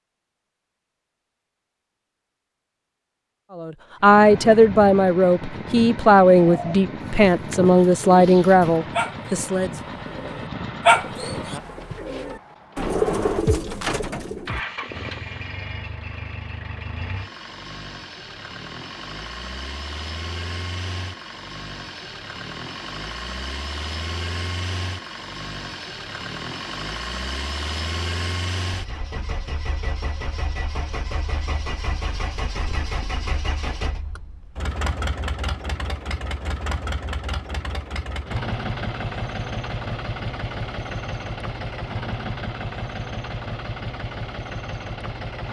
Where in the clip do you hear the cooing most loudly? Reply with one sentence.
The volume of the cooing peaks at 11 seconds.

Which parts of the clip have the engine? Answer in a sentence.
The engine can be heard from 4.0 to 45.4 s.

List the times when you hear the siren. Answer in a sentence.
You can't hear the siren here.